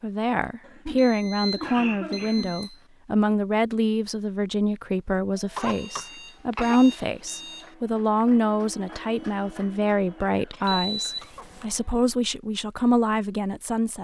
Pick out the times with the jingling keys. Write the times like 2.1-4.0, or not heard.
not heard.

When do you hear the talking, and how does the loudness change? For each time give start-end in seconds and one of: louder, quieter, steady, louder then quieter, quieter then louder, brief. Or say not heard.
0.0-13.9 steady.